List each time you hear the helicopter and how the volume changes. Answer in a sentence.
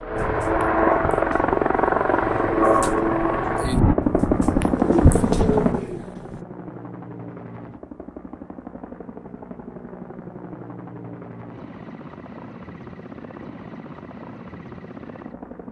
The helicopter can be heard from 0.0 to 15.6 s, getting quieter.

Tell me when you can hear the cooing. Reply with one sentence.
The cooing can be heard from 0.1 to 6.4 s.